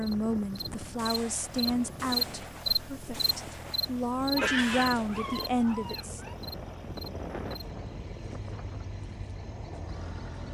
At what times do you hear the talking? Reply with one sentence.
The talking can be heard from 0.0 to 6.2 s.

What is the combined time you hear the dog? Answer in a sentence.
The dog can be heard for 2 seconds in total.